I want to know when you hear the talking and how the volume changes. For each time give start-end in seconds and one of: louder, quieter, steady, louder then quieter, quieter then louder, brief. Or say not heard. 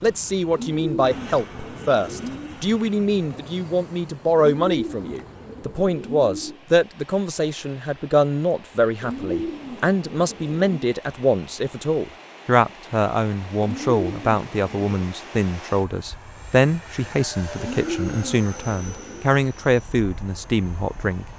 0.0-21.2 steady.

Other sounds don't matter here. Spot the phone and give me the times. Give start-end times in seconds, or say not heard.
not heard.